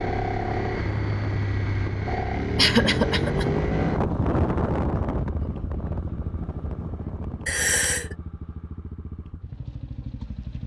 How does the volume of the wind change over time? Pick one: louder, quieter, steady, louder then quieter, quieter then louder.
louder then quieter.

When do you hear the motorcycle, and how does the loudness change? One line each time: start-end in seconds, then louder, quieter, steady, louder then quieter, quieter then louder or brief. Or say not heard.
0.0-10.6 quieter.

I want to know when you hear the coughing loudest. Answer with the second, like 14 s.
3 s.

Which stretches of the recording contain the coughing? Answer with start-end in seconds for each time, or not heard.
2.5-3.5, 7.5-8.2.